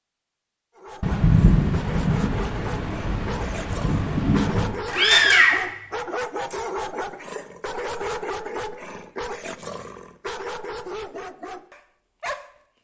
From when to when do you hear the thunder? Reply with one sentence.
You can hear the thunder from 1.0 to 4.8 s.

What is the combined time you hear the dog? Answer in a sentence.
The dog can be heard for 12 seconds in total.